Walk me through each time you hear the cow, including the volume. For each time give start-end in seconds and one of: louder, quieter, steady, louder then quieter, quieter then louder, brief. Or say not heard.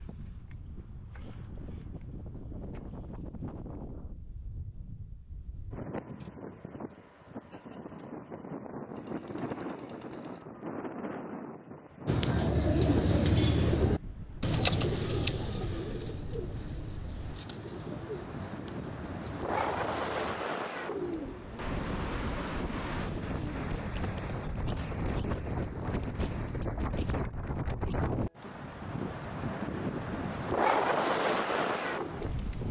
not heard.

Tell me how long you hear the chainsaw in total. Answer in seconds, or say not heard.
2 s.